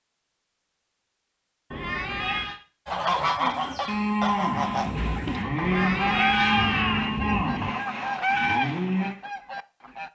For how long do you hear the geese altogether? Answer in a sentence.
You can hear the geese for 7 seconds altogether.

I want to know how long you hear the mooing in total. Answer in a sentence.
The mooing can be heard for 6 seconds in total.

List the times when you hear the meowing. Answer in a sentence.
You can hear the meowing from 1.7 to 2.6 s and from 5.6 to 7.2 s.